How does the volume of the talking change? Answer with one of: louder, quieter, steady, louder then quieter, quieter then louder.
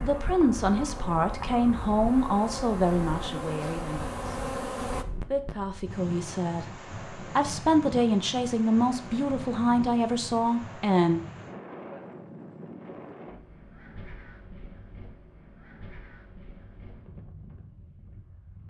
quieter then louder.